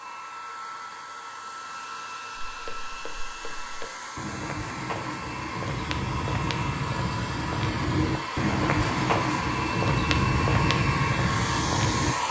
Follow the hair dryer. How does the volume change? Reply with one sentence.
The volume of the hair dryer goes up.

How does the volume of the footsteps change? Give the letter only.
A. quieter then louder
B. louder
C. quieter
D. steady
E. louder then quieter
B.